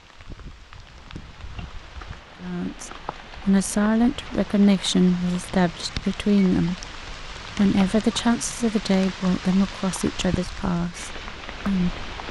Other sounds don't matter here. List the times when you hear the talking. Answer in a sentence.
The talking can be heard from 2.4 to 12.0 s.